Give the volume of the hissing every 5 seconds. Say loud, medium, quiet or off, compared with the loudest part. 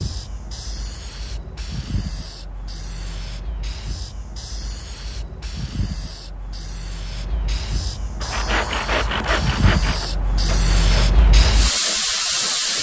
quiet, medium, loud.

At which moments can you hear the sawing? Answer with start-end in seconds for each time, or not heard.
8.2-12.7.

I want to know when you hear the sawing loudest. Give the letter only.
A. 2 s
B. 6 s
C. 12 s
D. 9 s
D.